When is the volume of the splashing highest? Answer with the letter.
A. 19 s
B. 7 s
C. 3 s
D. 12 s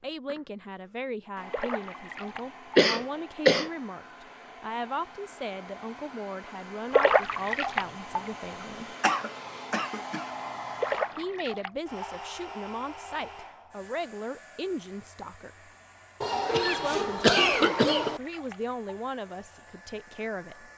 B.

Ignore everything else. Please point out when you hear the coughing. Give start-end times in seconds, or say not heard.
2.8-3.7, 9.0-10.2, 16.2-18.2.